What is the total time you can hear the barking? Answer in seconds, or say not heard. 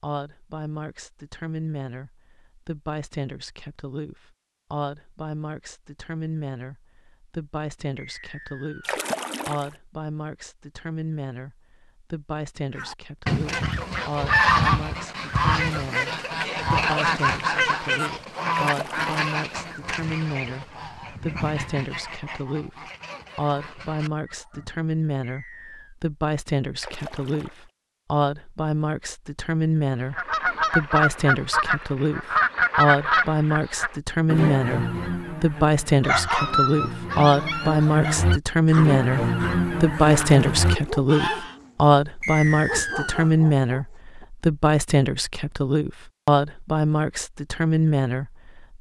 8 s.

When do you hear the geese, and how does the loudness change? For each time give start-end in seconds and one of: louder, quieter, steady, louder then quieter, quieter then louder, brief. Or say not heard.
12.8-24.8 quieter
30.1-41.5 quieter then louder.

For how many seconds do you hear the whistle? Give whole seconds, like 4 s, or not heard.
3 s.